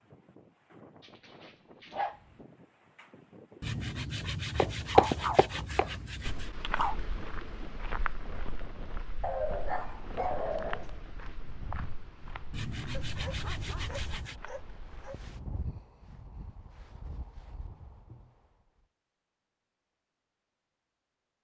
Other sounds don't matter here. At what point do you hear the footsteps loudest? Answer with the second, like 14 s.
5 s.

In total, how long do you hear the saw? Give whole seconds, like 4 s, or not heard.
5 s.